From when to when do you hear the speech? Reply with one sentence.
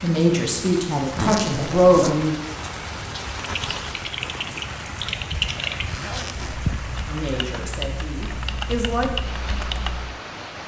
The speech can be heard from 0.0 to 2.4 s and from 7.0 to 9.2 s.